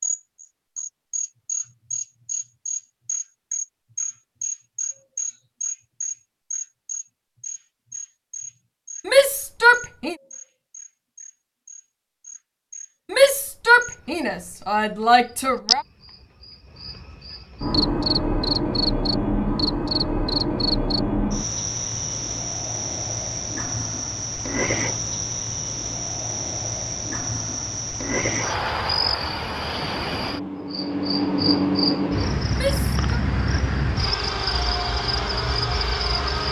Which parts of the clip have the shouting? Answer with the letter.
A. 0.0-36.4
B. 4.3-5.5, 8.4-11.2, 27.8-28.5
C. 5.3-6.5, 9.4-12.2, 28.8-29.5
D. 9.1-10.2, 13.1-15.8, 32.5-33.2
D.